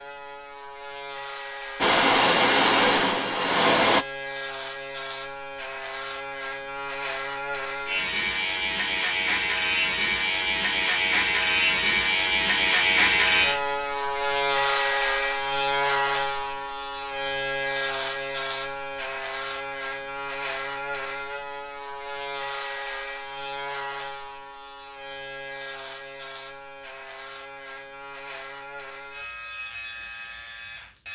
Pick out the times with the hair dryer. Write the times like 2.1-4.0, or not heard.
1.8-4.0.